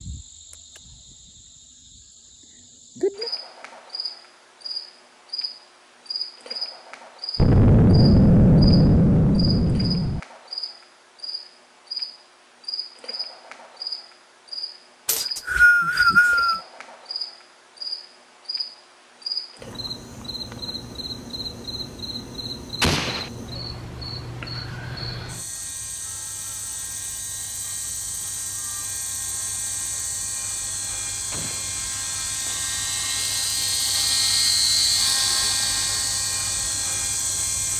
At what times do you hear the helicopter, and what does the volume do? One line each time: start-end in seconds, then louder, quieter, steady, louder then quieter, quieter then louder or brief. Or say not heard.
24.8-37.7 louder.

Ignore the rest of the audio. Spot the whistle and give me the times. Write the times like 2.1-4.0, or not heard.
15.1-16.6.